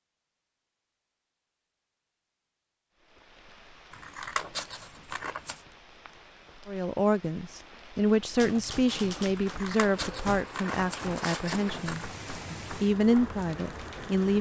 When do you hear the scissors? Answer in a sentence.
The scissors can be heard from 3.9 to 5.6 s and from 9.3 to 12.1 s.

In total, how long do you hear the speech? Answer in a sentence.
The speech can be heard for 8 seconds in total.